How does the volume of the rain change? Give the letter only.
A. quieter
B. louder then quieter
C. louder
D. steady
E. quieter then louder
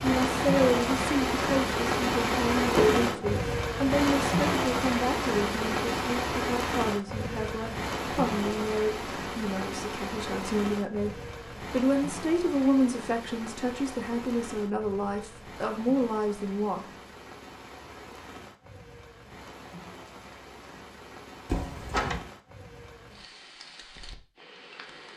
A.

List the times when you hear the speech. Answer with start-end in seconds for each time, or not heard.
0.0-11.1, 11.7-16.9.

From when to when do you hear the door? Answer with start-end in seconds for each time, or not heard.
2.8-3.4, 21.5-22.2.